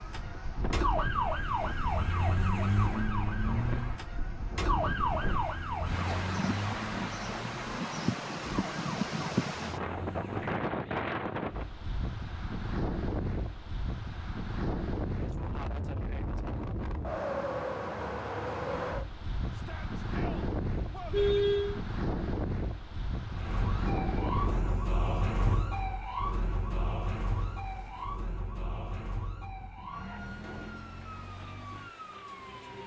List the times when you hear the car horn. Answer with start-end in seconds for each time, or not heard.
20.7-21.8.